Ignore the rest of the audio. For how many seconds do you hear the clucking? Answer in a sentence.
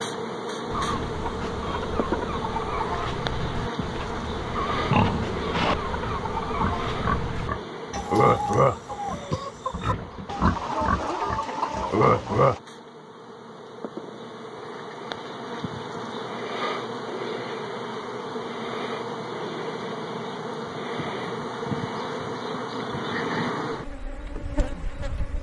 The clucking can be heard for 12 seconds in total.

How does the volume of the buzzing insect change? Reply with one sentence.
The loudness of the buzzing insect goes down, then up.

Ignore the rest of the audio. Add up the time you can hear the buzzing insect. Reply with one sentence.
The buzzing insect can be heard for 25 seconds in total.